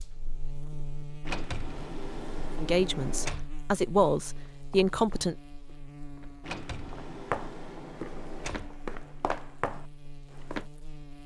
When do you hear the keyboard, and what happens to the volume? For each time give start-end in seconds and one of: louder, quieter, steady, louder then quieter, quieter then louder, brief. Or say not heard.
not heard.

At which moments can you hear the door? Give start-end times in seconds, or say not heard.
1.2-3.5, 6.4-8.7.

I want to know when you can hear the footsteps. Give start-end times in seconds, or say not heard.
4.5-10.7.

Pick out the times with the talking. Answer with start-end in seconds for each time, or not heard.
2.6-5.3.